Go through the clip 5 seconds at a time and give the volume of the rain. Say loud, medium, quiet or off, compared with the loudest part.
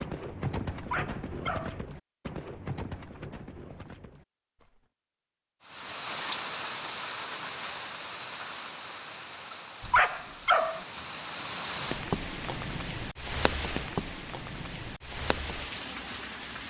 off, loud, loud, loud.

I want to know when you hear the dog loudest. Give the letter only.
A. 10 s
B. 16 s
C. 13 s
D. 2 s
A.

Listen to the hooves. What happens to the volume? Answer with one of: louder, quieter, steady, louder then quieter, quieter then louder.
quieter.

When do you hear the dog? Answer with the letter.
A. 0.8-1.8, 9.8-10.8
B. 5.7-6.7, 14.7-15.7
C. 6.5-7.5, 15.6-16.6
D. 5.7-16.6
A.